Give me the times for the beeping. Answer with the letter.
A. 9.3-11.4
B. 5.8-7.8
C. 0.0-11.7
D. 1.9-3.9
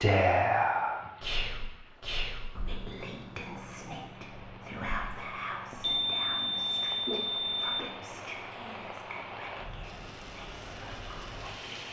B.